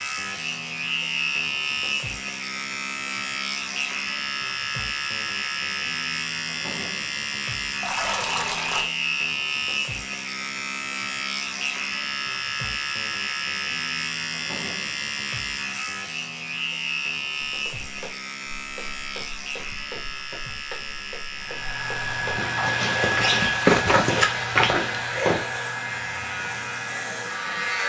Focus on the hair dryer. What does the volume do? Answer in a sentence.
The loudness of the hair dryer goes down.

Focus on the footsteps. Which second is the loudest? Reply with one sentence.
The loudest moment of the footsteps is at 24 seconds.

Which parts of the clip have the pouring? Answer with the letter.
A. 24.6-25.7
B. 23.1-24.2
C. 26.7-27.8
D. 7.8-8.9
D.